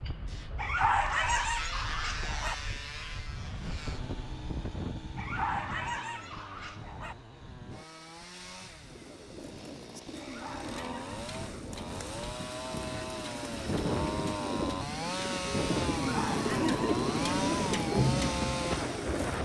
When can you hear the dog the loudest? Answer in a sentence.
The loudest moment of the dog is at 1 second.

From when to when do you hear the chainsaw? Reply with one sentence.
The chainsaw can be heard from 0.1 to 19.4 s.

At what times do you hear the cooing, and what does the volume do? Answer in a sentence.
The cooing can be heard from 8.9 to 19.4 s, getting louder.